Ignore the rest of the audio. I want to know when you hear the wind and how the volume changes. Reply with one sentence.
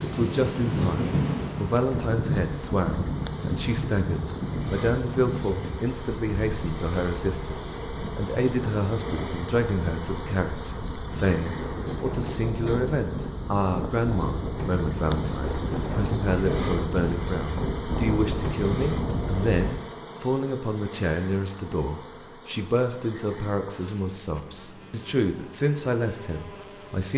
You can hear the wind from 0.0 to 19.7 s, getting quieter then louder.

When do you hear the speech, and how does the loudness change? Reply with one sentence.
The speech can be heard from 0.0 to 27.1 s, at a steady volume.